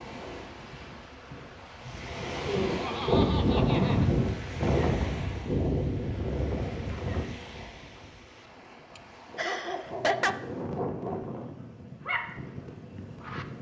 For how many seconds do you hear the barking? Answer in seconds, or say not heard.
4 s.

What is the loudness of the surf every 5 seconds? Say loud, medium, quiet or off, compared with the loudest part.
loud, medium, medium.